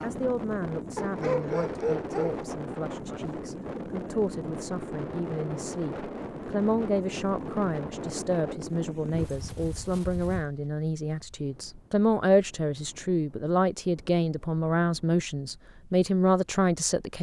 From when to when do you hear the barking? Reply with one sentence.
You can hear the barking from 0.9 to 2.5 s.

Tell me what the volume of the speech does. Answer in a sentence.
The volume of the speech goes up.